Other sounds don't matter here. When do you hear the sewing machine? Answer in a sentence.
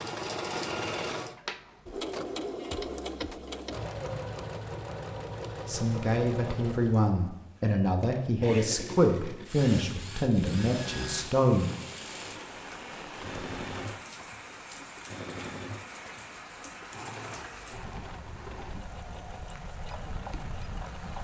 You can hear the sewing machine from 0.0 to 21.1 s.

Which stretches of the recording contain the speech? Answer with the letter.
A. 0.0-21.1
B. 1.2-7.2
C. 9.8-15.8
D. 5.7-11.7
D.